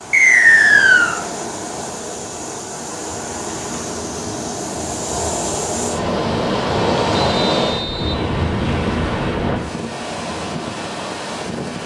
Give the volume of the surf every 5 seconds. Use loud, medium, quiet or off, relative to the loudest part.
medium, loud, medium.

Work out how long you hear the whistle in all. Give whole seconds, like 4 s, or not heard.
2 s.